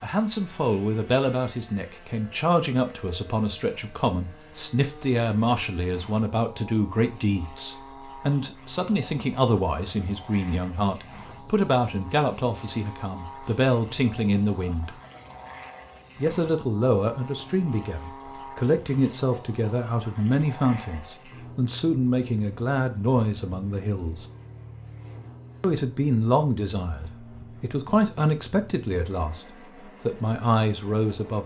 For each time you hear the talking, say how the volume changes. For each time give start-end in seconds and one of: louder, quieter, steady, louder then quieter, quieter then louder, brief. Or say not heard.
0.0-14.9 steady
16.1-24.2 steady
25.6-31.4 quieter then louder.